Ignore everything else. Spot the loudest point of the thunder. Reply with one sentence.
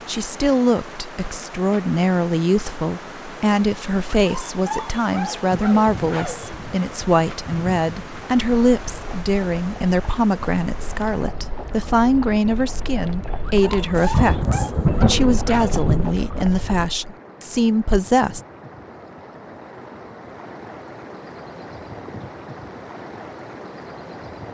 The volume of the thunder peaks at 15 seconds.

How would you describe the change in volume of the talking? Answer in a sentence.
The loudness of the talking stays about the same.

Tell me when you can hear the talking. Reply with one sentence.
You can hear the talking from 0.1 to 18.4 s.